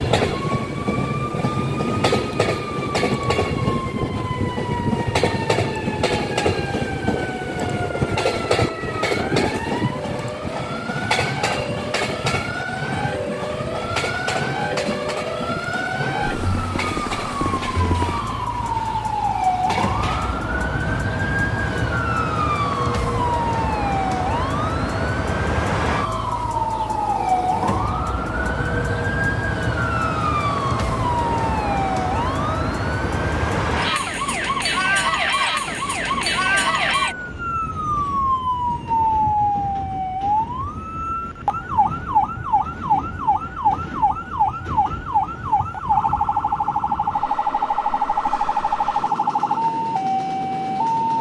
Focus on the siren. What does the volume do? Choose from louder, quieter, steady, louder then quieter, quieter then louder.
louder.